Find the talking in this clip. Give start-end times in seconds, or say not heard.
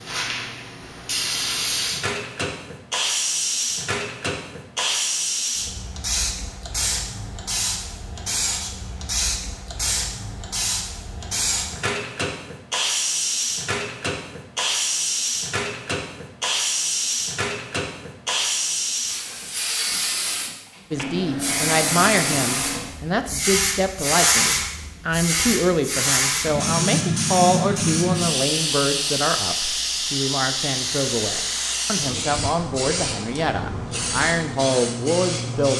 20.9-35.7.